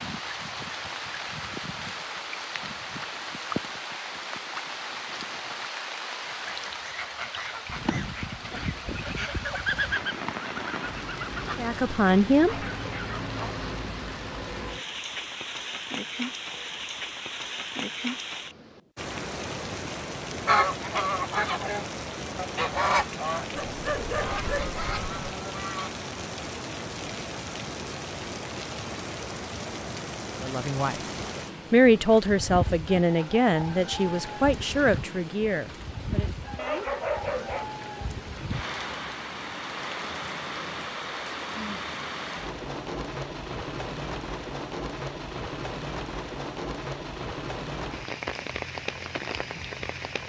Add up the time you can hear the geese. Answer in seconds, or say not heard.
11 s.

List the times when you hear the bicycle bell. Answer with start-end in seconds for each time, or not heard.
not heard.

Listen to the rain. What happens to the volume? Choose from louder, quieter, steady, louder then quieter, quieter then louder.
steady.